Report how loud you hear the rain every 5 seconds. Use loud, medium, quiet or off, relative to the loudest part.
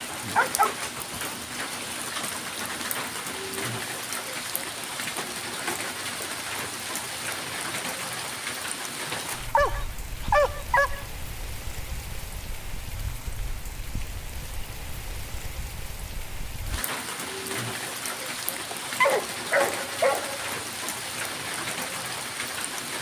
loud, loud, medium, loud, loud.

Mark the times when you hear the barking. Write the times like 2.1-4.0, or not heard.
0.3-1.2, 9.4-11.1, 18.7-20.4.